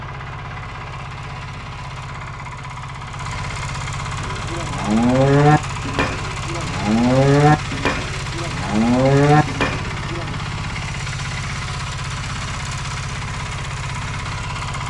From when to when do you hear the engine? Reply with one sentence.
The engine can be heard from 0.0 to 14.8 s.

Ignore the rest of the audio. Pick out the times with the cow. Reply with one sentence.
The cow can be heard from 4.2 to 10.3 s.